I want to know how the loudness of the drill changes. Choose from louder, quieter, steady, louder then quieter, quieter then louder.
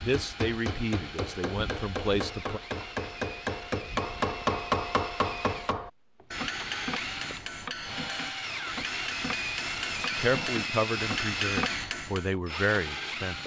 louder.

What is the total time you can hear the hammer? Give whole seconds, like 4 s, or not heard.
12 s.